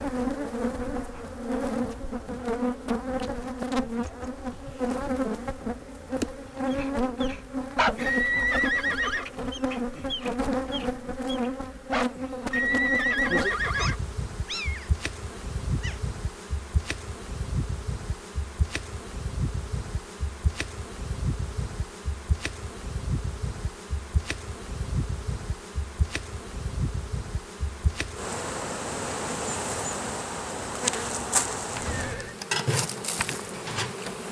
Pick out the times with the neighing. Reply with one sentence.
The neighing can be heard from 8.1 to 9.2 s, from 12.5 to 13.9 s and from 31.8 to 32.4 s.